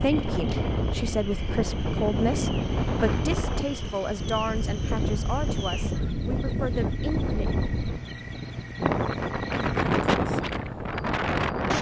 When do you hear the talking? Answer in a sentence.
The talking can be heard from 0.0 to 7.5 s.